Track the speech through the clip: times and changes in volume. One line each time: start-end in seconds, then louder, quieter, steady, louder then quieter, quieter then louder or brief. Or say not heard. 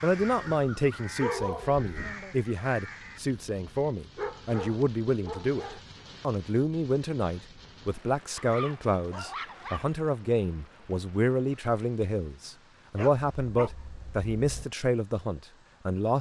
0.0-16.1 steady.